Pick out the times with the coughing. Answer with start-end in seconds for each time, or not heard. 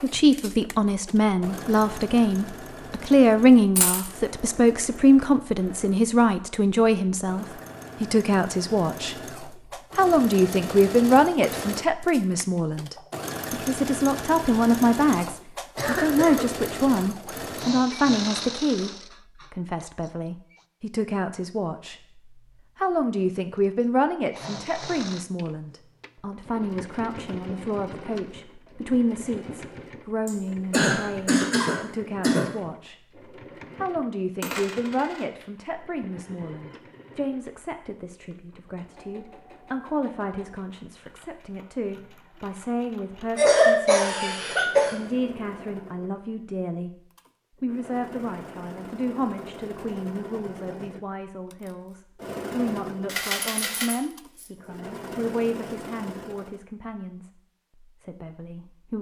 15.8-16.4, 30.2-32.5, 43.4-45.0.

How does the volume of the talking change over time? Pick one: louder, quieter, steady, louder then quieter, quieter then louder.
quieter.